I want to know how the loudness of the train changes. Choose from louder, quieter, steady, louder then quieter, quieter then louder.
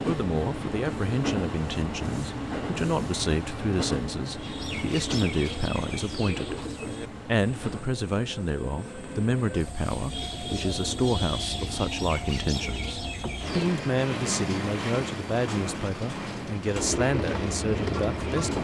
quieter then louder.